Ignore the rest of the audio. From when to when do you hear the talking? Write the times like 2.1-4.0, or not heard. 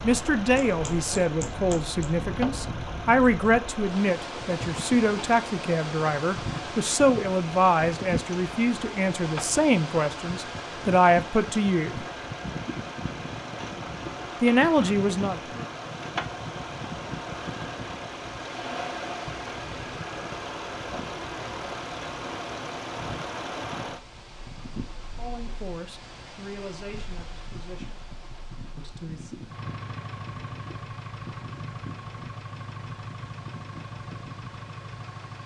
0.0-12.1, 14.4-15.7, 25.1-28.0, 28.8-29.4.